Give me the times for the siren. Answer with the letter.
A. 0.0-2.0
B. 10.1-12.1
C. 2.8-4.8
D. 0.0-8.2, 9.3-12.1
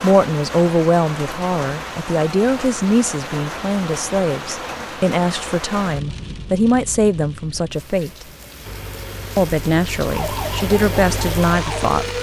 B.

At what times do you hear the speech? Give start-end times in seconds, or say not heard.
0.0-8.2, 9.3-12.1.